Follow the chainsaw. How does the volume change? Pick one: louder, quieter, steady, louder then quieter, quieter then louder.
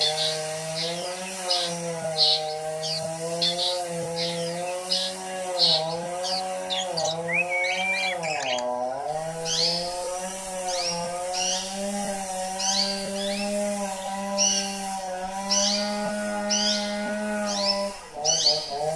steady.